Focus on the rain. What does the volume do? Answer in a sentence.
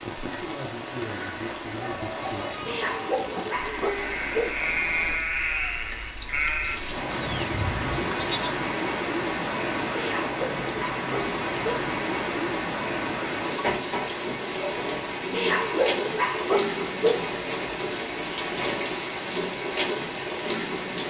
The loudness of the rain goes up.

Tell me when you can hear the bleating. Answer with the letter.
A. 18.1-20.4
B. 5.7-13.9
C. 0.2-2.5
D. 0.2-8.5
D.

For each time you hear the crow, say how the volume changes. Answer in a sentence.
You can't hear the crow here.